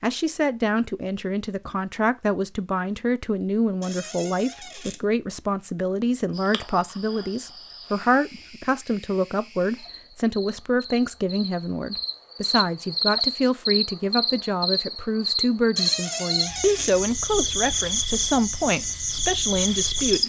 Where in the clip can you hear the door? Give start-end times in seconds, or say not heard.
3.8-5.0, 15.8-16.9.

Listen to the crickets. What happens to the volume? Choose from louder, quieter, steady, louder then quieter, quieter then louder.
louder.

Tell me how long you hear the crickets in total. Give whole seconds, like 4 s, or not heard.
14 s.